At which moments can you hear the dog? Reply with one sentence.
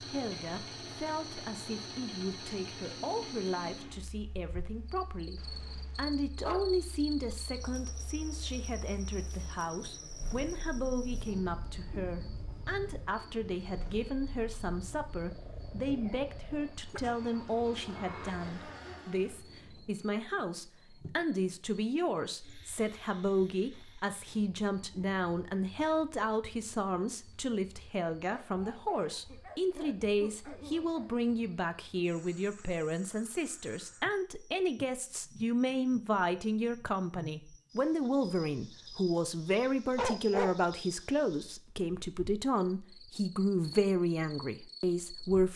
You can hear the dog from 5.3 to 6.7 s, from 15.3 to 17.0 s, from 28.2 to 31.1 s and from 40.0 to 40.7 s.